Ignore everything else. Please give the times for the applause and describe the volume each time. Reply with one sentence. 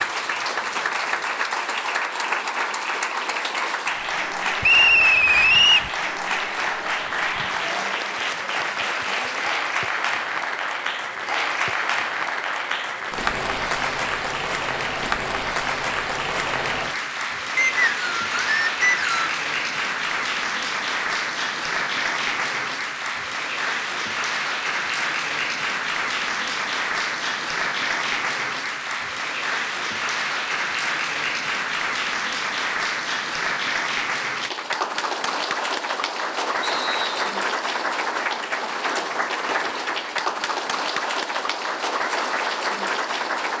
You can hear the applause from 0.0 to 43.5 s, at a steady volume.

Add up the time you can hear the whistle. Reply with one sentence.
You can hear the whistle for 4 seconds altogether.